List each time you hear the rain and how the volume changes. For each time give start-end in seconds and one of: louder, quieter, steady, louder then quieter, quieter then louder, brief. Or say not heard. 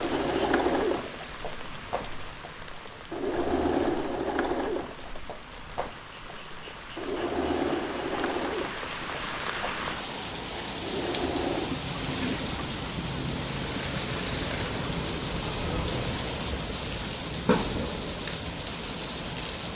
0.0-19.7 louder.